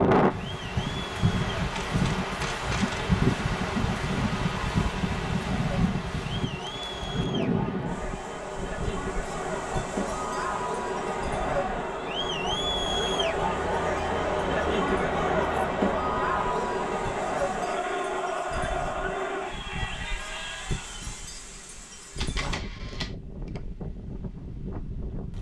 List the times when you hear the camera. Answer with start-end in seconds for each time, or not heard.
1.8-3.1, 22.1-23.1.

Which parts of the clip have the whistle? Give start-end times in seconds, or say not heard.
not heard.